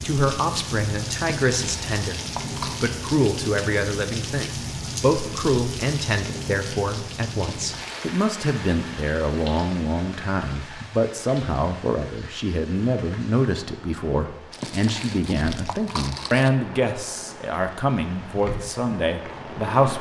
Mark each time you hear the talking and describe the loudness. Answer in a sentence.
You can hear the talking from 0.0 to 19.9 s, at a steady volume.